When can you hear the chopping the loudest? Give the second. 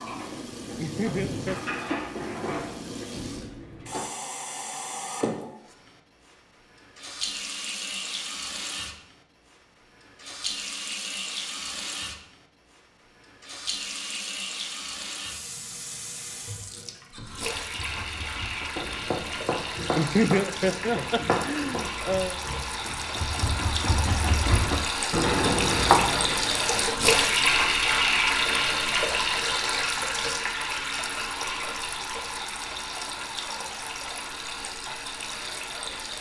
26 s.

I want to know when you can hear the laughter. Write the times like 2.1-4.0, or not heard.
0.8-1.6, 19.9-22.4.